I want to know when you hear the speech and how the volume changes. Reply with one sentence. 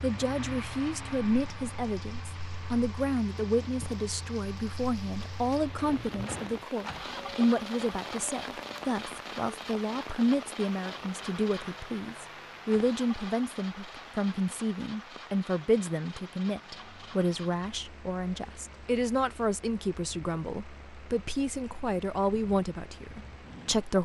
The speech can be heard from 0.0 to 24.0 s, at a steady volume.